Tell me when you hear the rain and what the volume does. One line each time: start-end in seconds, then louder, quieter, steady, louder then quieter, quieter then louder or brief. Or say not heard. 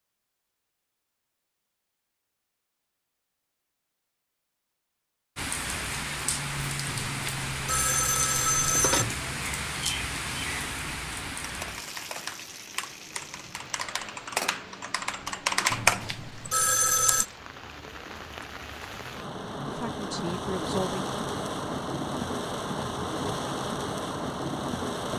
5.3-25.1 quieter then louder.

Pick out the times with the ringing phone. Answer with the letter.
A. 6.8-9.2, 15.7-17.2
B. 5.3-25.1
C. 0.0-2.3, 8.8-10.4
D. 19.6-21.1
A.